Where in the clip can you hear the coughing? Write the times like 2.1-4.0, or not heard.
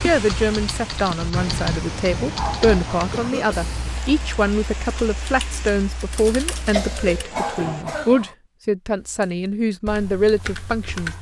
3.1-3.8, 6.7-8.2.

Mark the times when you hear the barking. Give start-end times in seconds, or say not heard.
2.3-3.4, 7.3-8.3.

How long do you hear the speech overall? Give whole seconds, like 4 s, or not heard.
11 s.